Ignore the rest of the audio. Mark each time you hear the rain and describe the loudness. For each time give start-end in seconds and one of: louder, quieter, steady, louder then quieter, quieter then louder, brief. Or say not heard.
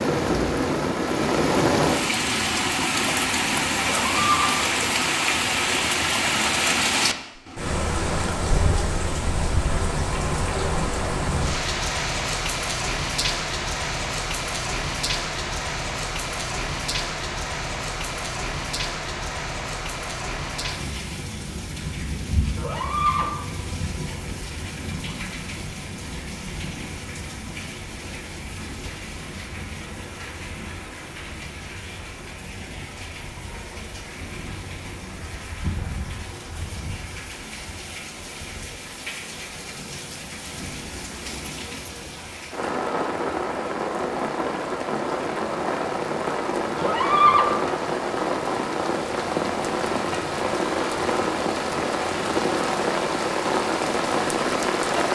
0.0-55.1 quieter then louder.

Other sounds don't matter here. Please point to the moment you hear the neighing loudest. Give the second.
47 s.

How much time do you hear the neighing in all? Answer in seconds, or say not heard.
2 s.